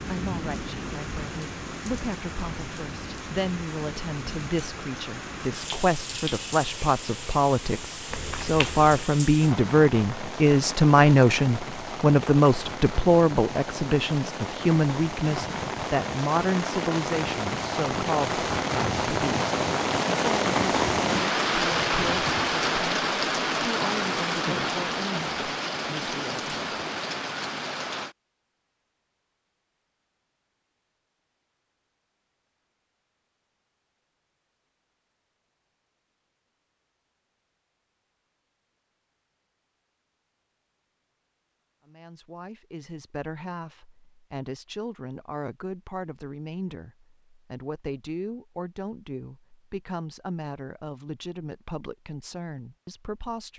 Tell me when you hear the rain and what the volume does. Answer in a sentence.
The rain can be heard from 0.0 to 28.1 s, getting louder.